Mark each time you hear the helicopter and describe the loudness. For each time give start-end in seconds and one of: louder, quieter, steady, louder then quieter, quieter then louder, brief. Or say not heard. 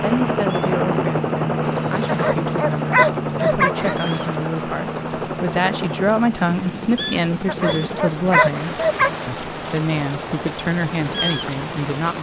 0.0-11.8 quieter.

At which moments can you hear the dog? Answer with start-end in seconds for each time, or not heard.
2.0-4.0, 7.5-9.1.